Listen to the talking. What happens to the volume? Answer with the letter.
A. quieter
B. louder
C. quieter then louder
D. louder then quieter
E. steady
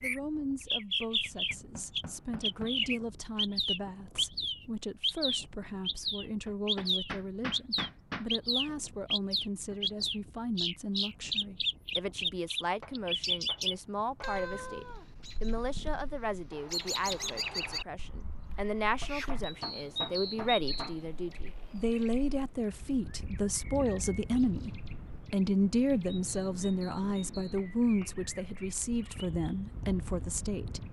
B.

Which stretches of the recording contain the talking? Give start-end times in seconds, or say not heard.
0.0-24.7, 25.3-30.8.